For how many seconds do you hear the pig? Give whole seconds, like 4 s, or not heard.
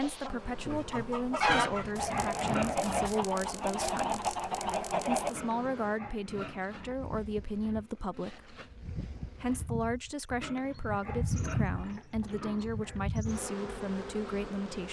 6 s.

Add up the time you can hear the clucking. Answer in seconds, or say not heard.
5 s.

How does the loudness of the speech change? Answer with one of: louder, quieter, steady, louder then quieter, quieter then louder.
steady.